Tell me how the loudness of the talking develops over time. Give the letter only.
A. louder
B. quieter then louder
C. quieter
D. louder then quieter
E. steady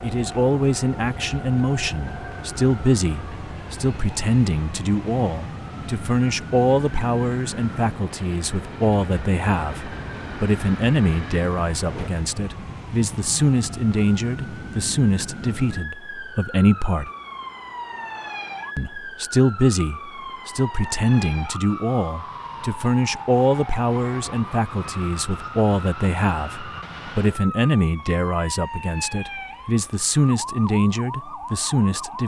E.